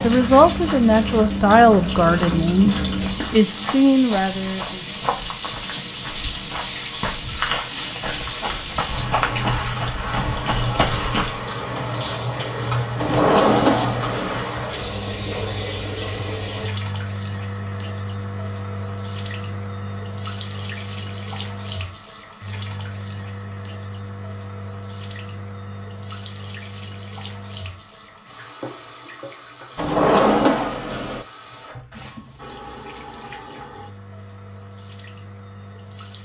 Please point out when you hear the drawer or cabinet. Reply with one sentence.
The drawer or cabinet can be heard from 12.9 to 14.4 s and from 29.8 to 31.2 s.